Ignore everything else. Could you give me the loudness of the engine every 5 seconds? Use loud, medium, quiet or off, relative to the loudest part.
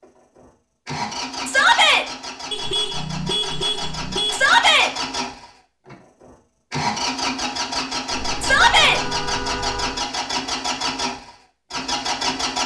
medium, loud, loud.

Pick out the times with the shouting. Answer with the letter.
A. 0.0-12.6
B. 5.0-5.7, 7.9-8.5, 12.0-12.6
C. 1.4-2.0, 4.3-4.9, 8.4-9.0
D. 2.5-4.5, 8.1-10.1
C.